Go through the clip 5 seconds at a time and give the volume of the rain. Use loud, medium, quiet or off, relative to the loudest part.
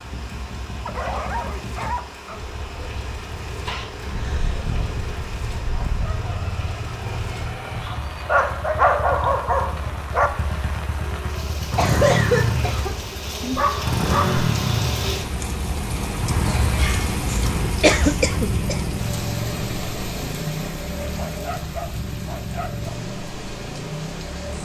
medium, medium, loud, loud, medium.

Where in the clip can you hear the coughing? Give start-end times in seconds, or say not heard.
3.6-4.8, 11.8-12.9, 17.8-18.8.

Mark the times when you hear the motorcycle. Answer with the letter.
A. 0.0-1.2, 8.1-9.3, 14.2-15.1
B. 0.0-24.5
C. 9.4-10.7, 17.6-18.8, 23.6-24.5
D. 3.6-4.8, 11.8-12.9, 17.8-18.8
B.